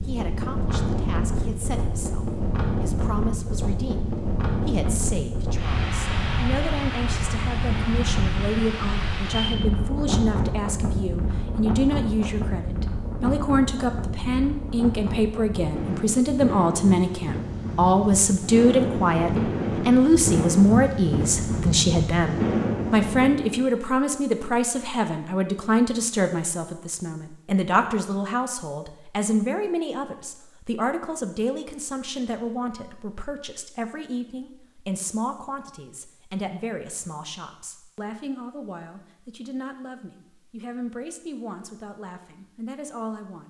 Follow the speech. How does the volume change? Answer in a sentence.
The loudness of the speech goes up, then down.